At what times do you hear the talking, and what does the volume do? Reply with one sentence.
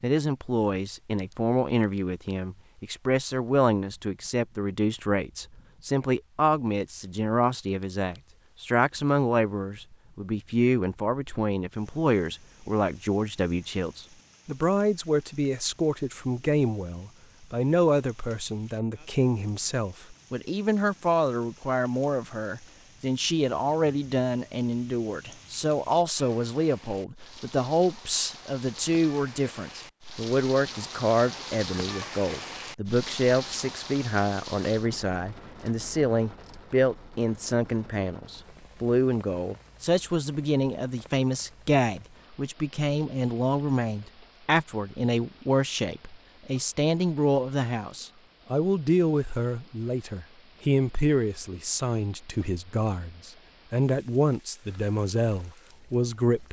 You can hear the talking from 0.0 to 56.4 s, at a steady volume.